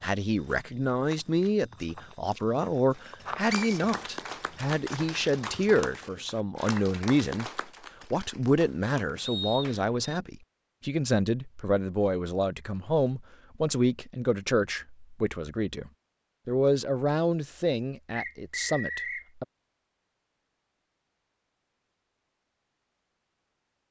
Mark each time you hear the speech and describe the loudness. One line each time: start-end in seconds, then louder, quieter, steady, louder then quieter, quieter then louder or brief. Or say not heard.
0.0-7.5 steady
8.1-19.4 steady.